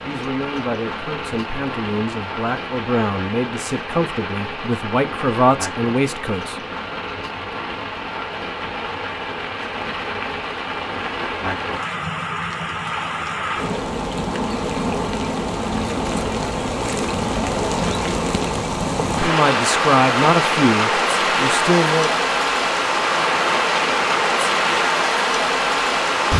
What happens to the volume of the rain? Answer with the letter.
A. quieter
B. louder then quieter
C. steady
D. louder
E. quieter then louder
D.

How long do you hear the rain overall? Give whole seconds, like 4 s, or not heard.
26 s.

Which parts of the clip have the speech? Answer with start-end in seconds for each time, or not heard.
0.0-6.6, 19.1-22.2.